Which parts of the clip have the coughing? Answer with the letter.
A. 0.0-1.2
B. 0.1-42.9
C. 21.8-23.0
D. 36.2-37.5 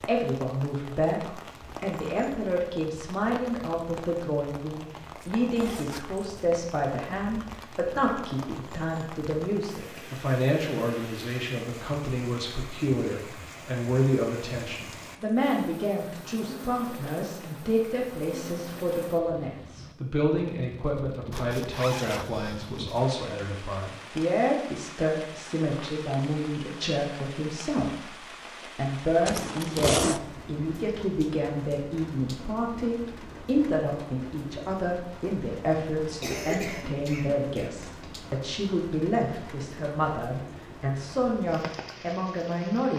D.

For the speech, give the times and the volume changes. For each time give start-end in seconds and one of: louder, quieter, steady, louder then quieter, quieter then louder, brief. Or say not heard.
0.1-42.9 steady.